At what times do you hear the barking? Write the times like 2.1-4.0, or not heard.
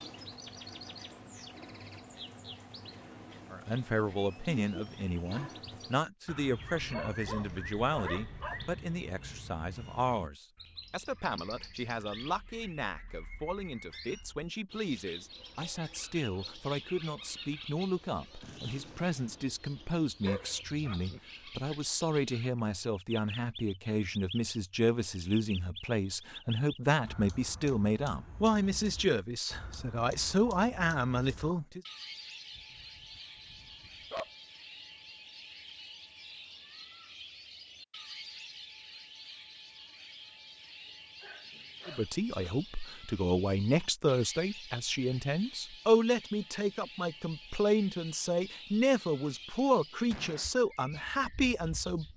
6.7-8.8, 20.2-21.2, 32.5-34.3, 40.9-42.6.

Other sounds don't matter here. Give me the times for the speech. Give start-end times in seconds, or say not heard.
3.5-31.8, 41.9-52.1.